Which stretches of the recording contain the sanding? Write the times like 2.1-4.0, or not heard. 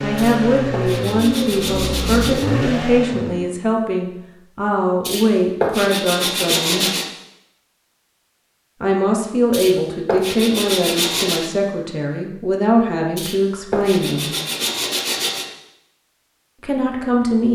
0.1-2.5, 5.0-7.0, 9.5-11.5, 13.2-15.4.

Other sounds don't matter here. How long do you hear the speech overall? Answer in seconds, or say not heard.
13 s.